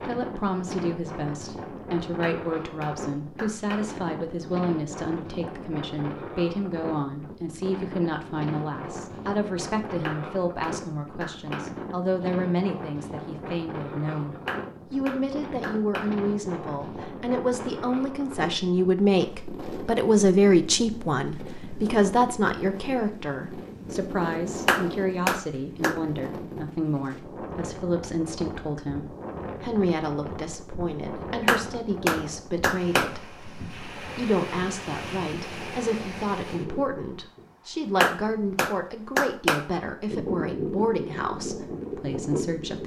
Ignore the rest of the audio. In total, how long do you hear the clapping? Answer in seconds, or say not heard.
10 s.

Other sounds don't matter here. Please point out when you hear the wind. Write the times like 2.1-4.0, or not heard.
0.0-42.8.